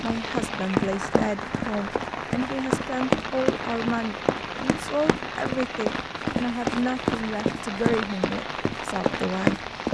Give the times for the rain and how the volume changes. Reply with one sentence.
The rain can be heard from 0.0 to 9.9 s, at a steady volume.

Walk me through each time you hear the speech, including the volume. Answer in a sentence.
You can hear the speech from 0.0 to 9.6 s, at a steady volume.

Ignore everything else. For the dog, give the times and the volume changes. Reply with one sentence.
You can't hear the dog here.